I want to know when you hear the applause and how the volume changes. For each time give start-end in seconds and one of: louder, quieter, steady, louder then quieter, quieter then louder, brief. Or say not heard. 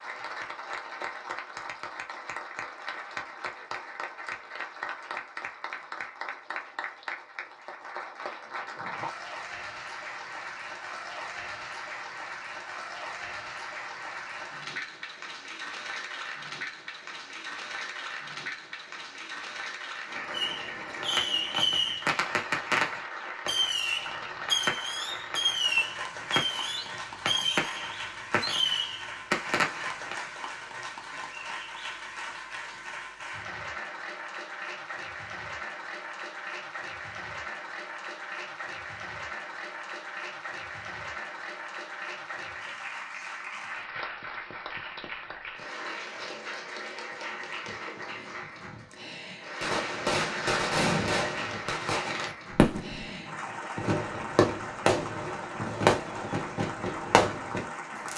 0.0-58.1 steady.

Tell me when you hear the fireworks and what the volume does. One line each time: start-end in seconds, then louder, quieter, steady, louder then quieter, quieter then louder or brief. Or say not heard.
20.3-30.1 steady
49.6-58.1 steady.